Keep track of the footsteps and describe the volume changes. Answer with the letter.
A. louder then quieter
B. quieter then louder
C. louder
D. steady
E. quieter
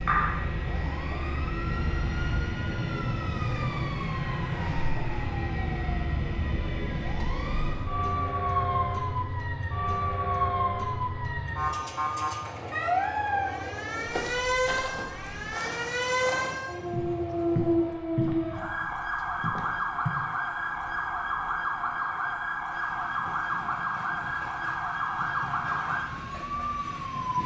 A.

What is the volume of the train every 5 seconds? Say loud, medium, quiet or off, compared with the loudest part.
loud, loud, medium, quiet, quiet, medium.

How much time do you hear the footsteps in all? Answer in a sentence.
You can hear the footsteps for 6 seconds altogether.